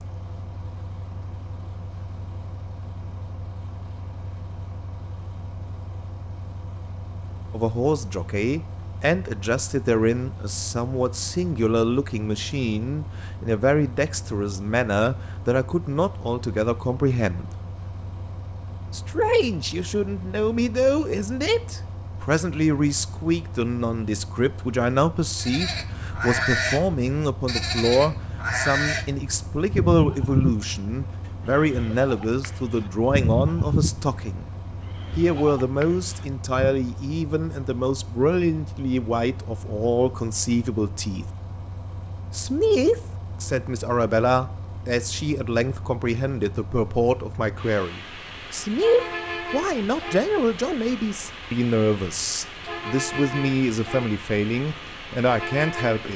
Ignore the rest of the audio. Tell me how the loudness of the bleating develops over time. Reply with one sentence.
The loudness of the bleating goes down.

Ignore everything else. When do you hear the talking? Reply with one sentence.
You can hear the talking from 7.5 to 17.4 s, from 18.9 to 34.5 s, from 35.1 to 41.3 s and from 42.3 to 56.1 s.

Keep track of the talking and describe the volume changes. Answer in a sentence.
The volume of the talking stays about the same.